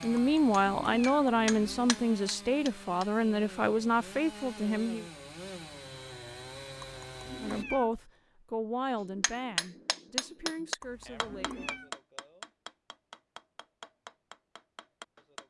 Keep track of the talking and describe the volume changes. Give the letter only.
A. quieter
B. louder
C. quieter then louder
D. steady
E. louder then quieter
A.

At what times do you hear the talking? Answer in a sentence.
You can hear the talking from 0.0 to 5.0 s and from 7.4 to 11.6 s.